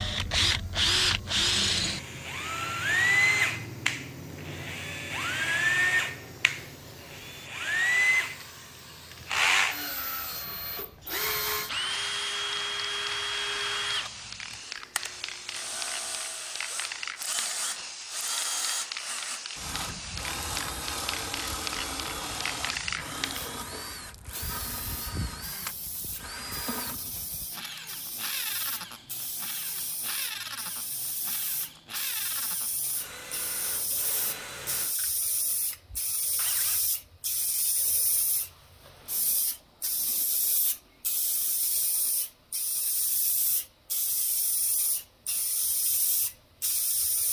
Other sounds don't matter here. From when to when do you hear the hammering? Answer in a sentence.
The hammering can't be heard in this clip.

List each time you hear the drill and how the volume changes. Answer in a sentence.
The drill can be heard from 0.0 to 36.9 s, getting quieter.